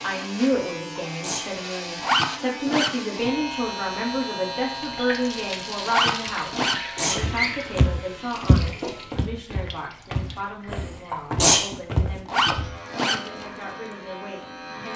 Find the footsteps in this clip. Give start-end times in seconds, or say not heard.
7.2-12.8.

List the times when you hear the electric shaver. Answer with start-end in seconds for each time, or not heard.
0.0-9.2, 12.4-14.9.